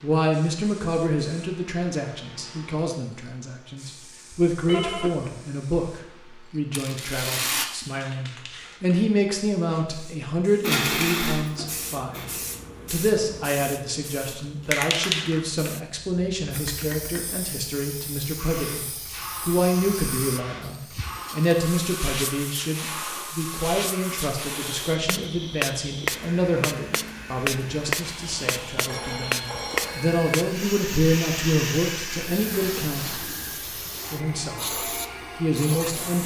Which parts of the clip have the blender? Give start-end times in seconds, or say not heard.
10.6-12.2, 18.4-36.2.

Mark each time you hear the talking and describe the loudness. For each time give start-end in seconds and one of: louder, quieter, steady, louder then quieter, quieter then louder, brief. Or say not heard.
0.0-33.2 steady
34.1-36.2 brief.